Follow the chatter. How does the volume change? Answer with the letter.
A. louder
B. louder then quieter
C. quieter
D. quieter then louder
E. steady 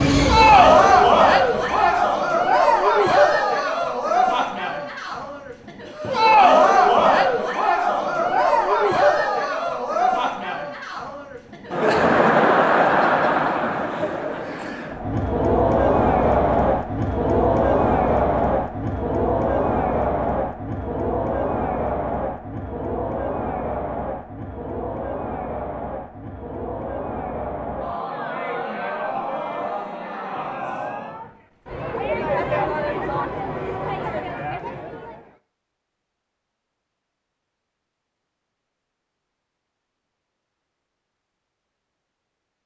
C.